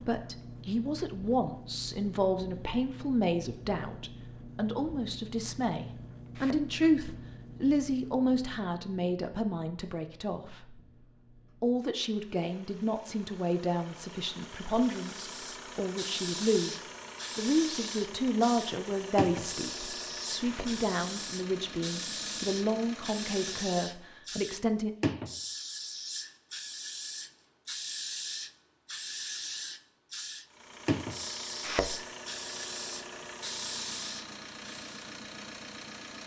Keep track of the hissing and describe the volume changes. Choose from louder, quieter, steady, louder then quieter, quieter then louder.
steady.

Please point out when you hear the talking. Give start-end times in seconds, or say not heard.
0.0-10.9, 11.6-24.9.